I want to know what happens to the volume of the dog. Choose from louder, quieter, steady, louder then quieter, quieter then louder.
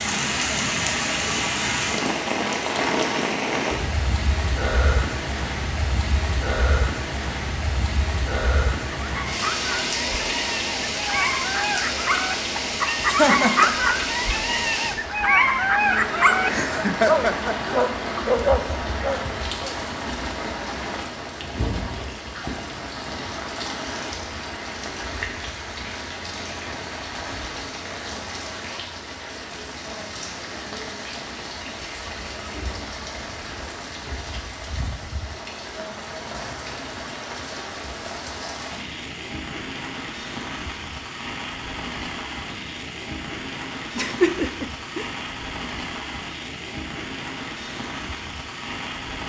louder.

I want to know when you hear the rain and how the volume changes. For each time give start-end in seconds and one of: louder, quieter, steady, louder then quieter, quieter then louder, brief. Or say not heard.
0.0-49.2 quieter.